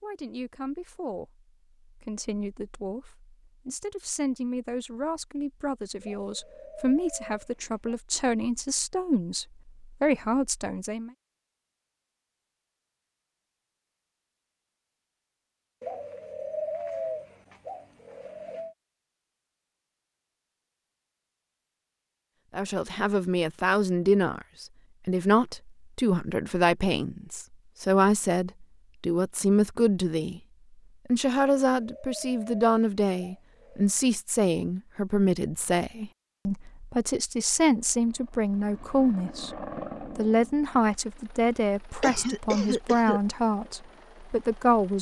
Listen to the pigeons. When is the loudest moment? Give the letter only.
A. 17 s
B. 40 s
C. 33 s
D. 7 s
A.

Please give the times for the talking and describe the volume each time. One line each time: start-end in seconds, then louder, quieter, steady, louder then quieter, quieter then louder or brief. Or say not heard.
0.0-11.1 louder
22.5-30.4 steady
31.1-44.9 steady.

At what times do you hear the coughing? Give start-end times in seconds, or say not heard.
42.0-43.2.